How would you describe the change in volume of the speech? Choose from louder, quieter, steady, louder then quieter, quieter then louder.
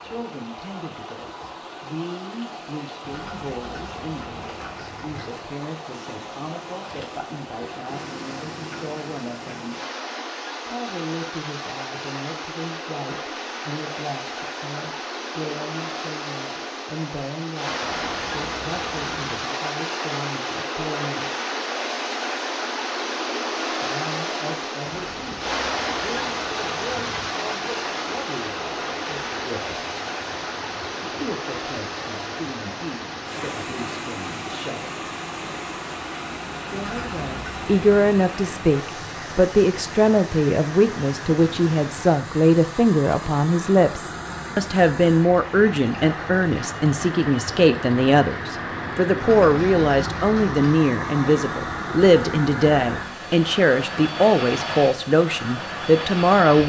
louder.